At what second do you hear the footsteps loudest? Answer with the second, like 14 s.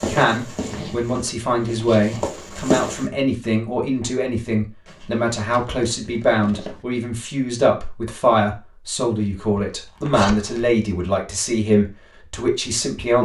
3 s.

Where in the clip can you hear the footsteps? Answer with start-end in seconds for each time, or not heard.
0.0-3.0.